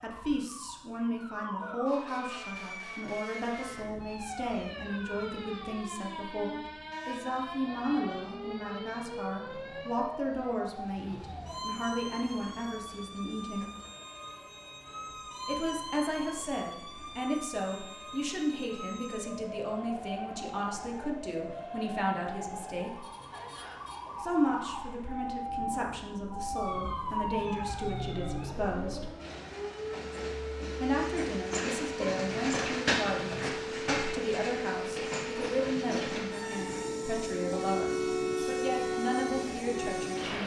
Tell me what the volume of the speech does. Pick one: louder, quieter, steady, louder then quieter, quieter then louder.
steady.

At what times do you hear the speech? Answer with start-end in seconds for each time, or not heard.
0.0-13.7, 15.4-23.1, 24.2-29.1, 30.8-40.4.